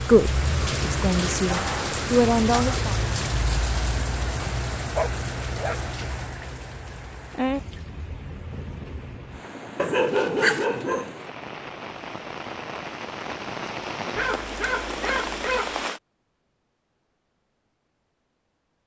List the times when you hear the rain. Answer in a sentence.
The rain can be heard from 0.0 to 16.0 s.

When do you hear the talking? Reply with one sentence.
You can hear the talking from 0.0 to 3.0 s.